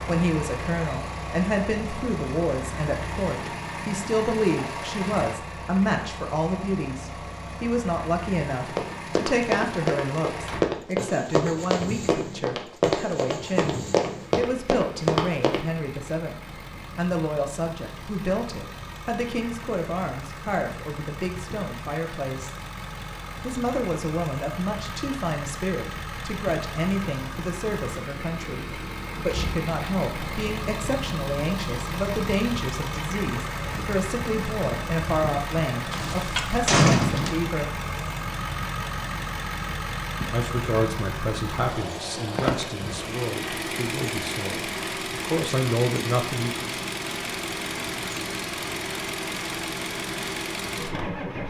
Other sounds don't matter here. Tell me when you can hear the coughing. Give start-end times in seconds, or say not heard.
not heard.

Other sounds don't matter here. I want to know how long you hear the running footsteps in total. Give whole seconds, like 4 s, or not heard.
7 s.